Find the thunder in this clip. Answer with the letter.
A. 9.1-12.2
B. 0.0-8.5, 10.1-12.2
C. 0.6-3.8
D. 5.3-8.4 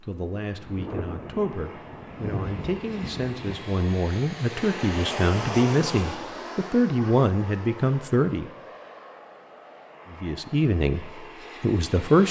C.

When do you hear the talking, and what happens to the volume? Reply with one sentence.
The talking can be heard from 0.0 to 8.5 s, getting louder; and briefly from 10.1 to 12.2 s.